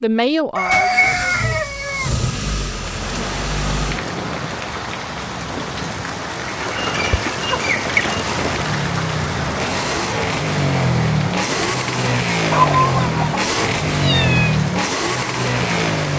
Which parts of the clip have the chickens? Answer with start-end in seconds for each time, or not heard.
0.6-2.1, 6.6-8.3, 12.5-13.4.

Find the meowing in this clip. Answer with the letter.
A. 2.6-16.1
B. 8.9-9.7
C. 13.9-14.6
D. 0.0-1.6
C.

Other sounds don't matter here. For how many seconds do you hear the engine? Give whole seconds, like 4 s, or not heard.
12 s.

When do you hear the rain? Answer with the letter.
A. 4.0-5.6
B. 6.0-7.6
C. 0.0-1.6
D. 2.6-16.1
D.